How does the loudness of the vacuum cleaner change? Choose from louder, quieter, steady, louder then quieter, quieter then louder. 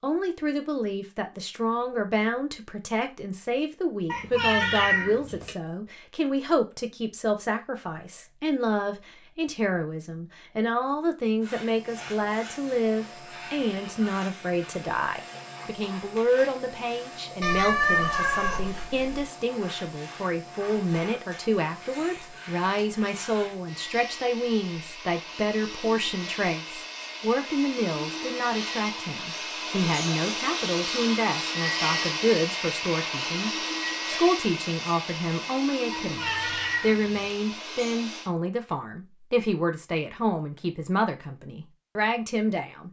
louder.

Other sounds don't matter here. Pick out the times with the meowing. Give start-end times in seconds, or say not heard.
4.0-5.5, 17.4-19.2, 35.9-37.4.